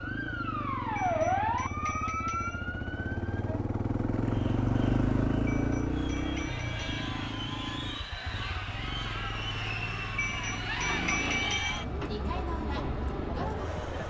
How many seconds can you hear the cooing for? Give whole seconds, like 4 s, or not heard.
not heard.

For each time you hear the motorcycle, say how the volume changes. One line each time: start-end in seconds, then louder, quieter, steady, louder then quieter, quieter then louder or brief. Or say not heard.
0.0-14.0 louder then quieter.